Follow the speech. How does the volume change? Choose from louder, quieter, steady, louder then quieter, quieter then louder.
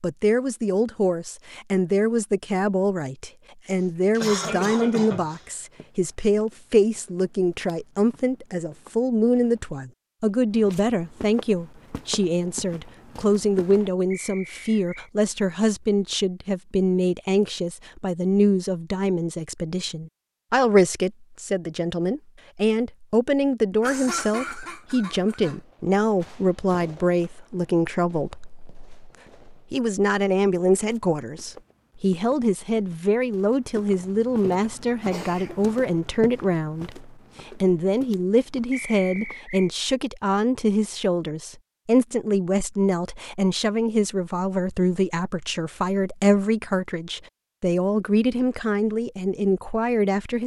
steady.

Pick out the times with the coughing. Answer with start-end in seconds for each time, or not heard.
3.6-5.4, 23.8-25.6, 34.0-35.6.